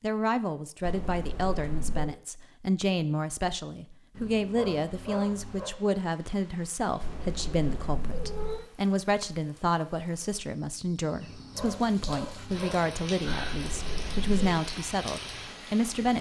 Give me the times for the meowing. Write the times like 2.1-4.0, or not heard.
0.8-2.1, 7.0-8.7, 13.2-14.7.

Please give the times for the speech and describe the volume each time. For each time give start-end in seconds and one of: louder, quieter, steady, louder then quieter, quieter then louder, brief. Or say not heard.
0.0-16.1 steady.